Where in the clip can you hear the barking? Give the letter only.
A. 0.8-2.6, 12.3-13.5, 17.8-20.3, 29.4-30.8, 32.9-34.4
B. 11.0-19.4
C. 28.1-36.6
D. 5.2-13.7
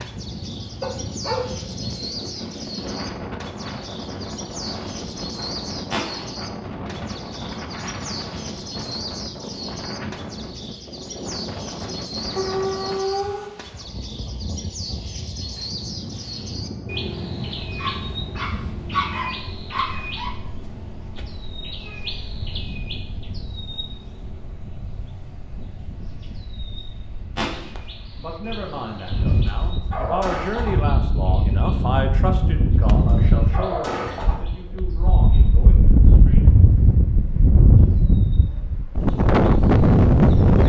A.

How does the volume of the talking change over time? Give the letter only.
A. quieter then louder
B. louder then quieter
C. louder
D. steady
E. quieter
B.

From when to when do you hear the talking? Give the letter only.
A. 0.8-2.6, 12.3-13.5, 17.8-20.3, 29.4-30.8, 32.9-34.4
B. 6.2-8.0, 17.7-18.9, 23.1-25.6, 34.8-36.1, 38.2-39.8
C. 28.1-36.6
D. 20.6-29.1
C.